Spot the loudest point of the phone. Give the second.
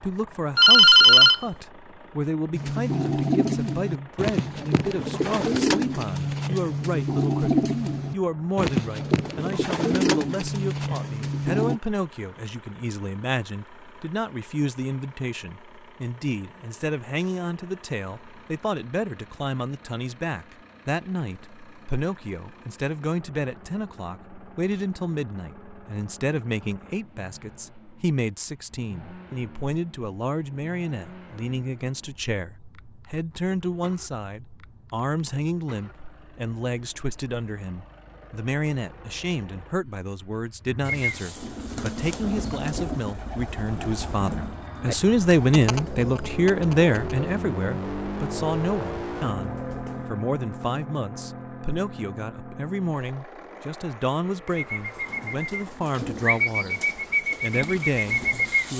1 s.